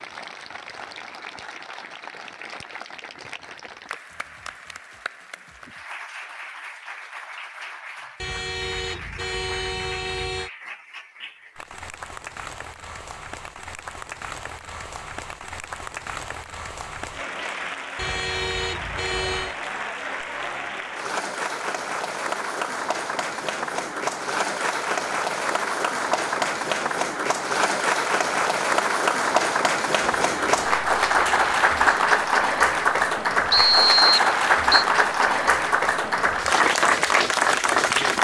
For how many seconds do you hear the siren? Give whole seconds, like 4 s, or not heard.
not heard.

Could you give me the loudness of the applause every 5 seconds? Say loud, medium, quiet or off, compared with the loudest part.
quiet, quiet, quiet, quiet, medium, loud, loud, loud.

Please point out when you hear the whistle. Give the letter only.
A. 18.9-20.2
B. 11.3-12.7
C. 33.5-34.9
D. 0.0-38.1
C.